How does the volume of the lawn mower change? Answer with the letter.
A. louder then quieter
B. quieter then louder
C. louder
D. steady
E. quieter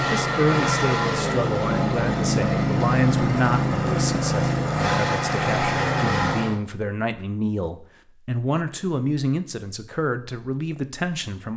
D.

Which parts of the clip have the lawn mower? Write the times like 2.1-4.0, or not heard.
0.0-6.6.